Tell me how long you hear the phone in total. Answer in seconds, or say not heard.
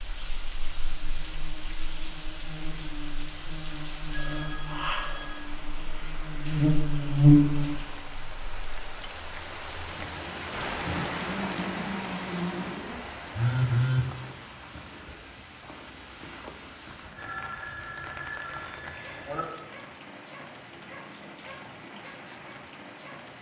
4 s.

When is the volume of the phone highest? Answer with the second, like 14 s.
14 s.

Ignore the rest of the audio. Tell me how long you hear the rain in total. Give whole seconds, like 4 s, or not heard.
23 s.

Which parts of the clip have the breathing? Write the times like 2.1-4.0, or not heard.
not heard.